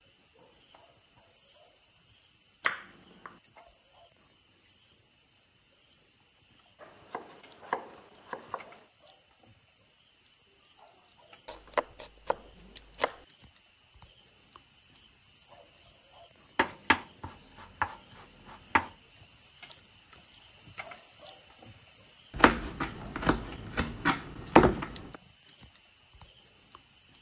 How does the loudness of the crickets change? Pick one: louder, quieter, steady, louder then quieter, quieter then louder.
louder.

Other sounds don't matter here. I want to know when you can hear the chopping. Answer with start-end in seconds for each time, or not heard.
2.6-3.4, 6.8-8.8, 11.4-13.2, 16.6-18.9, 22.4-24.9.